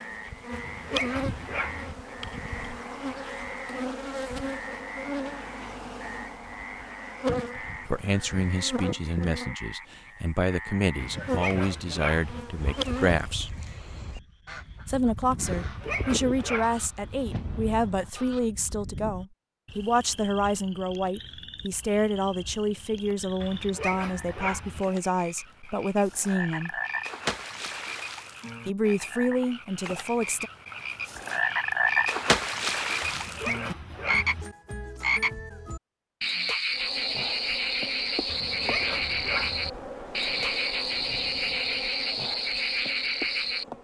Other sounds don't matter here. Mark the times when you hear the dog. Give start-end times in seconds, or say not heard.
0.5-1.9, 10.9-12.4, 15.4-16.9, 23.4-24.9, 33.0-34.5, 38.2-39.7.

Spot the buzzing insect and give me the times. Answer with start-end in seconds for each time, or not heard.
0.0-9.6, 11.1-13.2, 36.7-43.7.